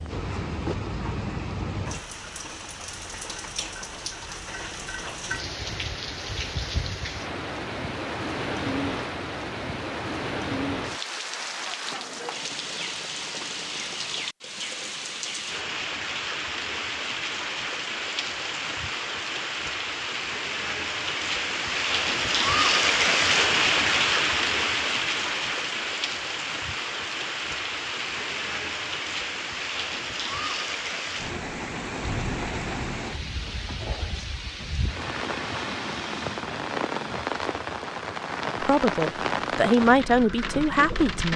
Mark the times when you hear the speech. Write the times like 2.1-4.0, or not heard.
38.6-41.3.